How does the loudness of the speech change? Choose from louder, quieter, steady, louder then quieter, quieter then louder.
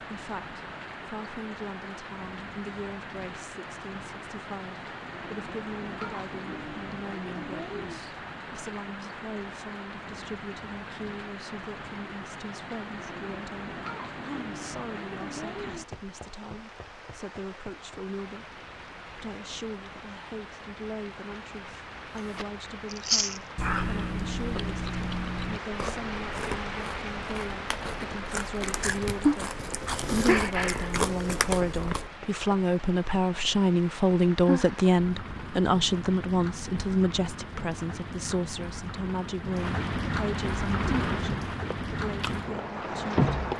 louder.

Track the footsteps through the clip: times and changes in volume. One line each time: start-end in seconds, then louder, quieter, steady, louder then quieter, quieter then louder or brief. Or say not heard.
not heard.